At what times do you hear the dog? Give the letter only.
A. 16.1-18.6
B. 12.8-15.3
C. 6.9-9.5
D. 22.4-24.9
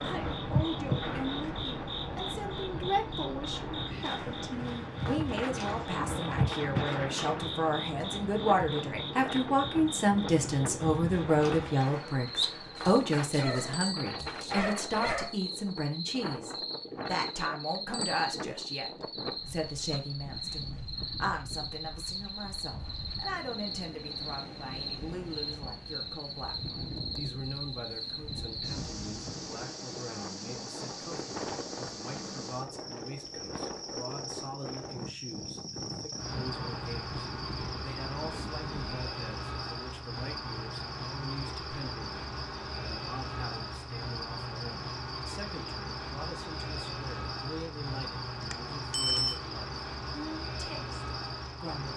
B.